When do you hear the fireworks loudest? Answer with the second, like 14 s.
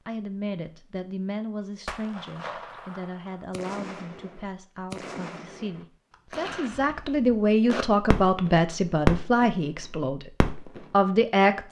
9 s.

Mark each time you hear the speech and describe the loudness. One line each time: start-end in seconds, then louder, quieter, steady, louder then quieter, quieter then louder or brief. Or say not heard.
0.1-11.6 louder.